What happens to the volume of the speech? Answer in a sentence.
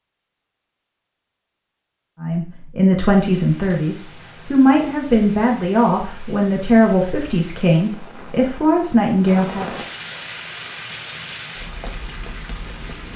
The volume of the speech stays about the same.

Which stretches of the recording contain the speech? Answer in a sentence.
The speech can be heard from 2.2 to 9.7 s.